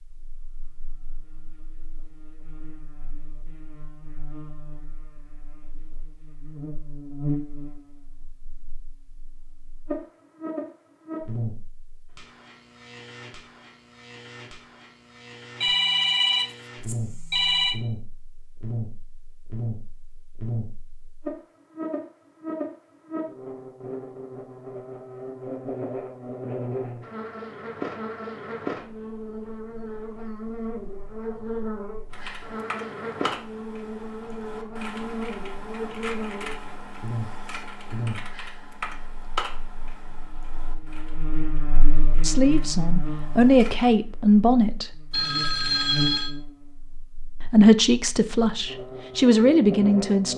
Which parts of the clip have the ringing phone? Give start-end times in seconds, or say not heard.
15.6-17.8, 45.1-46.3.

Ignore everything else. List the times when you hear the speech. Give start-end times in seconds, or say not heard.
42.2-45.0, 47.5-50.3.